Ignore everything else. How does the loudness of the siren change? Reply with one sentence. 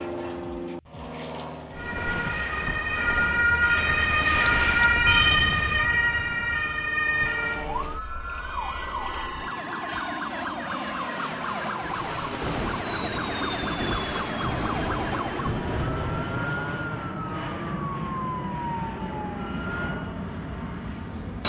The loudness of the siren goes down.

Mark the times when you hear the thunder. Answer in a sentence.
The thunder can be heard from 11.8 to 16.5 s.